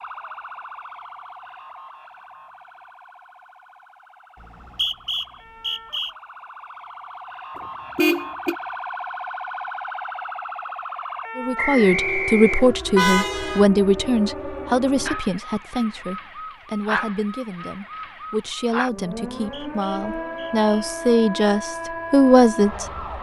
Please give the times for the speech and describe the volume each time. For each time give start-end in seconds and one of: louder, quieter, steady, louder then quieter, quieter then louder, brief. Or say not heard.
11.3-22.9 quieter then louder.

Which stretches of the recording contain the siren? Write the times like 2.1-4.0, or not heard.
0.0-23.1.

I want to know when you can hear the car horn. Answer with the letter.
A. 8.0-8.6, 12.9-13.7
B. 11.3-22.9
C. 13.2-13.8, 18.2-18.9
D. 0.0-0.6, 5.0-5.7
A.